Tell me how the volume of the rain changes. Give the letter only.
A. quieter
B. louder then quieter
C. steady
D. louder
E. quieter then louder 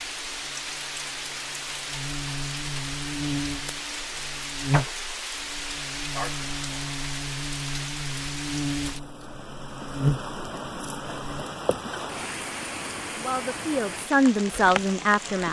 C.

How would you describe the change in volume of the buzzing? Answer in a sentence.
The loudness of the buzzing goes up.